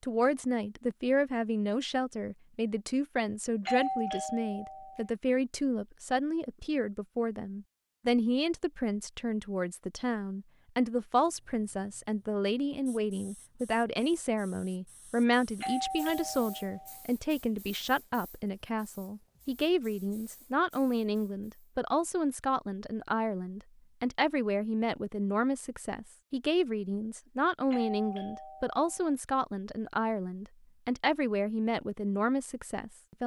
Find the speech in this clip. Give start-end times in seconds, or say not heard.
0.0-33.2.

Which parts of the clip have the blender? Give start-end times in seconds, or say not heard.
not heard.